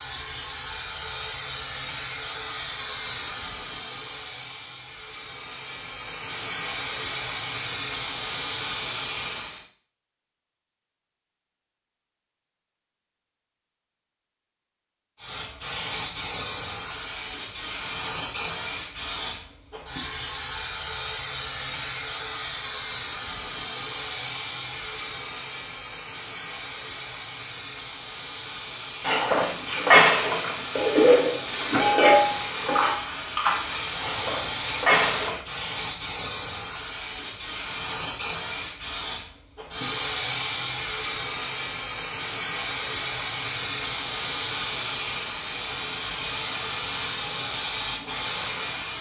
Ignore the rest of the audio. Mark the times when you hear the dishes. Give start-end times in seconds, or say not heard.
29.0-35.4.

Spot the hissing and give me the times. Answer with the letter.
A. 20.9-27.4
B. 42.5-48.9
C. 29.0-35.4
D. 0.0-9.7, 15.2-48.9
D.